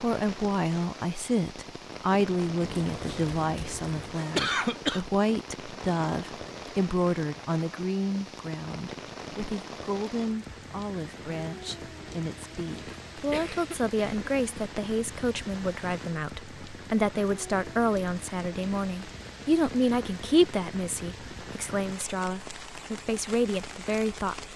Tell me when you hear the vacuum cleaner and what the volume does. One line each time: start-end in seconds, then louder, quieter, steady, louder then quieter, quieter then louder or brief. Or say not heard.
not heard.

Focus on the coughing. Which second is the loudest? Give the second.
5 s.